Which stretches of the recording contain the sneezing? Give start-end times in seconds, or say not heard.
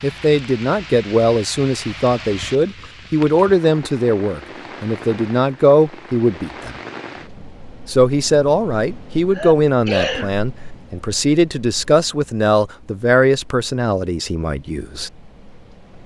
9.3-10.3.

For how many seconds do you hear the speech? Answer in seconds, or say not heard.
14 s.